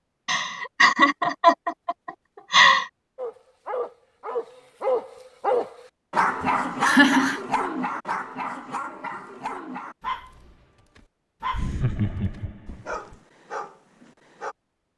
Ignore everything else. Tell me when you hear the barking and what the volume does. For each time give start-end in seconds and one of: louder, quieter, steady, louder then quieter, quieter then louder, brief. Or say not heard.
3.1-14.6 quieter.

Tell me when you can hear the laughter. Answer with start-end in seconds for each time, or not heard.
0.2-2.9, 6.4-7.4, 11.5-13.2.